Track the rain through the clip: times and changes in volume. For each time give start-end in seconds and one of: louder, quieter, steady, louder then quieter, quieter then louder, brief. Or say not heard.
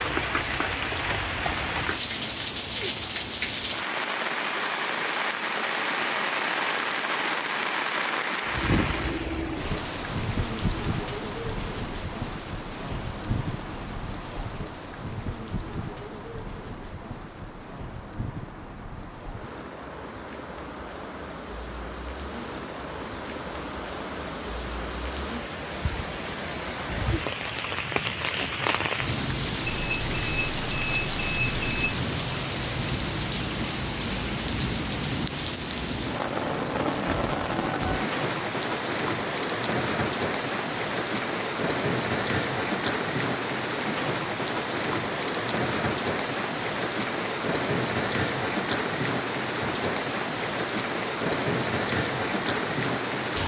0.0-53.4 quieter then louder.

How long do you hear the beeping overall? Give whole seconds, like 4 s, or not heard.
2 s.